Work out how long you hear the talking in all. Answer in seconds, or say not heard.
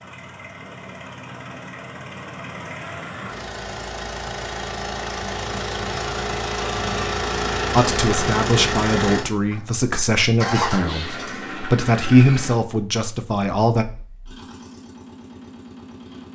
6 s.